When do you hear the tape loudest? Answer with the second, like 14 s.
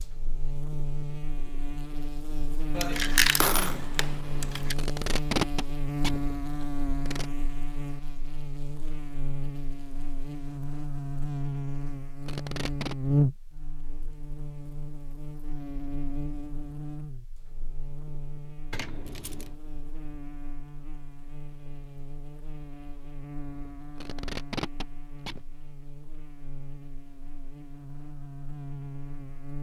5 s.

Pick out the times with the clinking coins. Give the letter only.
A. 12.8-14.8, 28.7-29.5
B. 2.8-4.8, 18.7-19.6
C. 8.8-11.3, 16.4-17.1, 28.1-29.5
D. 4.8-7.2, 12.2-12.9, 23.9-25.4
B.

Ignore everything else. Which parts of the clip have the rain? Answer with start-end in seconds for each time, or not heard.
not heard.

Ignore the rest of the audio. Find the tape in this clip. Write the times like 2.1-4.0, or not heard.
4.8-7.2, 12.2-12.9, 23.9-25.4.